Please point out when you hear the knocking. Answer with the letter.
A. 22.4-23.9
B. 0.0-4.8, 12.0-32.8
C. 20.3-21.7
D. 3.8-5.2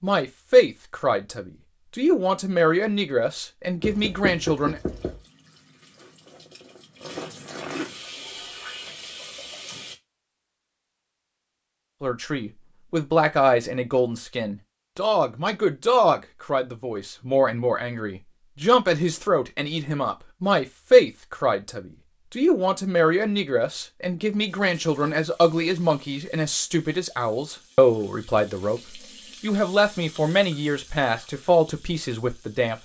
D.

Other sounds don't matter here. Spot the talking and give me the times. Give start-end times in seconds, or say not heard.
0.0-4.8, 12.0-32.8.